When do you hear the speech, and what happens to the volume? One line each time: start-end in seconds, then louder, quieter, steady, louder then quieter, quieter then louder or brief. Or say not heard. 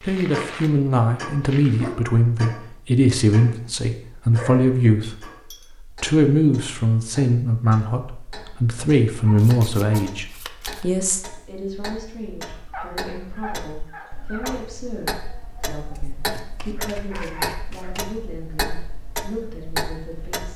0.1-20.5 quieter.